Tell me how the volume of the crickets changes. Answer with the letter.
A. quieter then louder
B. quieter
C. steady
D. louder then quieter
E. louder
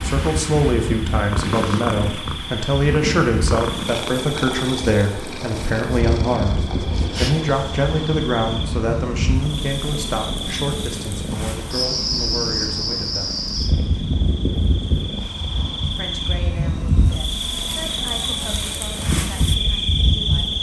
E.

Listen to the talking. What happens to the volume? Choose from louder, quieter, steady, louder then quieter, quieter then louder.
quieter.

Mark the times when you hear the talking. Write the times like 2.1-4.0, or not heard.
0.0-13.4, 15.8-20.5.